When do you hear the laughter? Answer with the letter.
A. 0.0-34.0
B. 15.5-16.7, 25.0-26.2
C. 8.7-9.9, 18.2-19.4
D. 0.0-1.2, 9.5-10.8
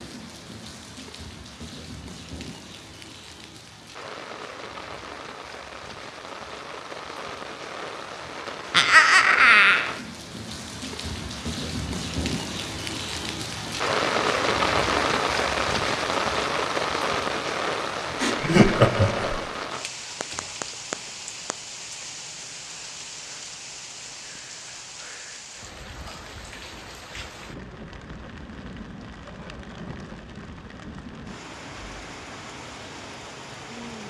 C.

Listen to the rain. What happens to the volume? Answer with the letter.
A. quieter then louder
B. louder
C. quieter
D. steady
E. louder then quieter
E.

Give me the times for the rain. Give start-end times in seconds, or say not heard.
0.0-34.0.